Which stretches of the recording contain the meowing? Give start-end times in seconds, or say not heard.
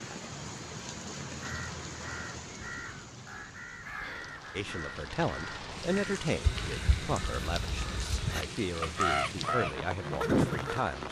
not heard.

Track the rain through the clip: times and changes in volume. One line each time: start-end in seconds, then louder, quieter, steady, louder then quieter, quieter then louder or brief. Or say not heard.
0.0-11.0 quieter then louder.